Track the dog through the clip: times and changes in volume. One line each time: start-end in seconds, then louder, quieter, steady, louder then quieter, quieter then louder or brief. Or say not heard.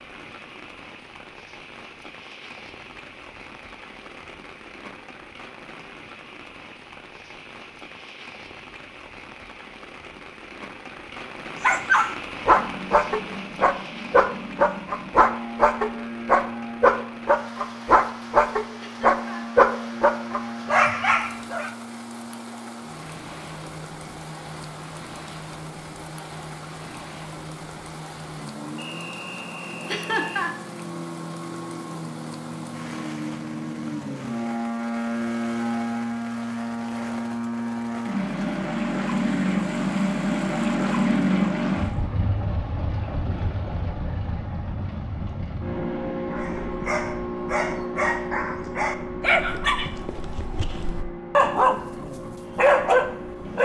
11.6-21.7 steady
46.3-53.6 louder.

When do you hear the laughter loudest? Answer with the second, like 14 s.
30 s.